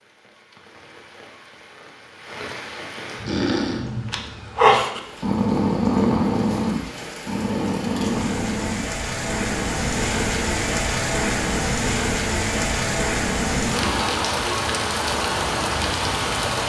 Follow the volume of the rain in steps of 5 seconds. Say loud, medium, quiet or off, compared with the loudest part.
quiet, medium, loud, loud.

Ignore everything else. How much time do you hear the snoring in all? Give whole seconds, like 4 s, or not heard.
11 s.